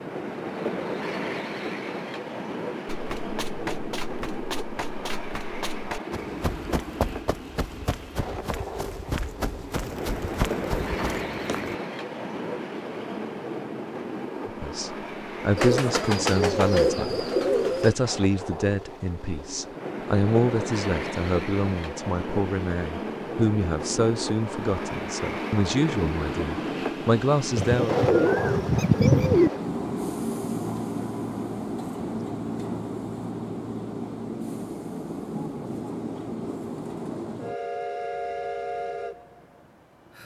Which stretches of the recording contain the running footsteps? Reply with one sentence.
The running footsteps can be heard from 2.9 to 11.7 s.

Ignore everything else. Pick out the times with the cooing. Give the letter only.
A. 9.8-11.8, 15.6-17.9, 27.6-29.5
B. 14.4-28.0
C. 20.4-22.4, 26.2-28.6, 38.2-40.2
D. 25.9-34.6
A.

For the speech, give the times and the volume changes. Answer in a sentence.
You can hear the speech from 14.4 to 28.0 s, at a steady volume.